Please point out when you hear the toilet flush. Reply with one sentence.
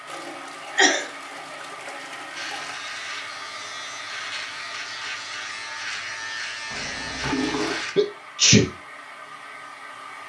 You can hear the toilet flush from 0.1 to 2.8 s and from 6.7 to 7.8 s.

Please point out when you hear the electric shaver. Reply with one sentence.
The electric shaver can be heard from 2.4 to 8.0 s.